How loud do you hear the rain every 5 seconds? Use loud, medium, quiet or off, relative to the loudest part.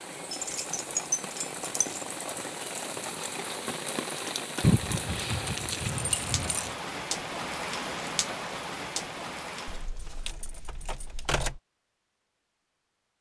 loud, loud, off.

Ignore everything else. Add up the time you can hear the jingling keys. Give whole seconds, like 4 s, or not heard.
6 s.